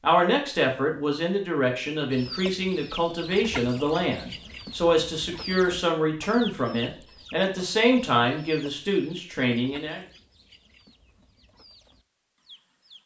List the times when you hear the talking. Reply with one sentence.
You can hear the talking from 0.0 to 10.0 s.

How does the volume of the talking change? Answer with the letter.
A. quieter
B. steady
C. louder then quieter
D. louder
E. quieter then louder
B.